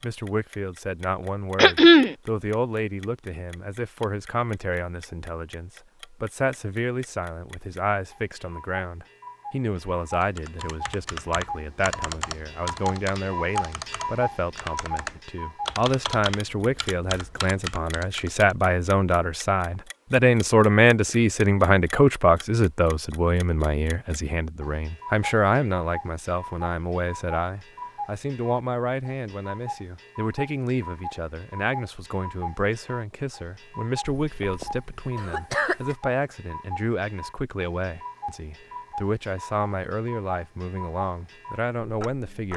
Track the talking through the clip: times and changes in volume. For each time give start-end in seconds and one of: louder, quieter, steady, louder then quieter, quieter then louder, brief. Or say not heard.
0.0-42.5 louder then quieter.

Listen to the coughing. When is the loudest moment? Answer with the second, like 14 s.
2 s.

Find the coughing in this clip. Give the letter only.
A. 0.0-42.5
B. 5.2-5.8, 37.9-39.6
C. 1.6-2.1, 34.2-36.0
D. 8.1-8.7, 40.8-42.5
C.